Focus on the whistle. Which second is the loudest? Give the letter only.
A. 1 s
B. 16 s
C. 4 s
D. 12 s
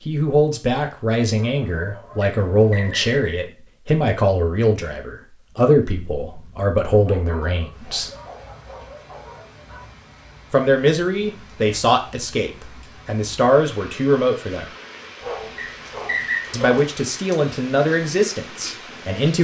B.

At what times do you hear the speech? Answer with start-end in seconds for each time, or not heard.
0.1-8.1, 10.5-14.7, 16.5-19.3.